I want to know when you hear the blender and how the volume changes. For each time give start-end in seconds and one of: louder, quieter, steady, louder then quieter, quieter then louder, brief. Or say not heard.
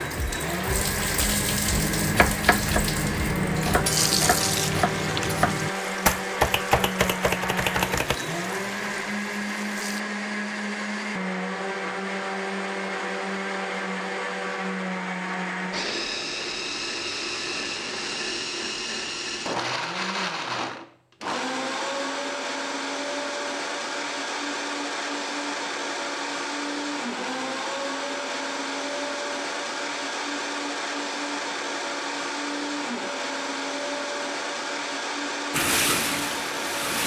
0.0-37.0 steady.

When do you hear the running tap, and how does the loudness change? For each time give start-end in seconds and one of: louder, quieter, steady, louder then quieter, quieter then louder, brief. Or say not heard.
0.0-10.0 quieter
35.5-37.0 brief.